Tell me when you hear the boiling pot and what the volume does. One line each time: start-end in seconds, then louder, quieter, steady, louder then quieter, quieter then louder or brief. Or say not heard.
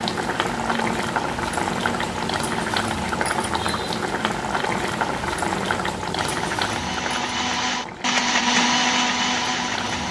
0.0-10.0 quieter.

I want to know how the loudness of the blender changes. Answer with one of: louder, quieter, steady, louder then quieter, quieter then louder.
louder.